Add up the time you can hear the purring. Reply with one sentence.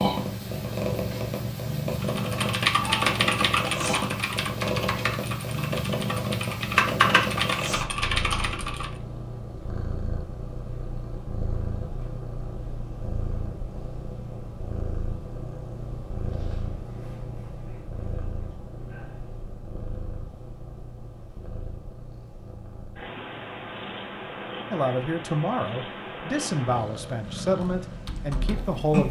You can hear the purring for 29 seconds altogether.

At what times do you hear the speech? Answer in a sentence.
You can hear the speech from 24.7 to 29.0 s.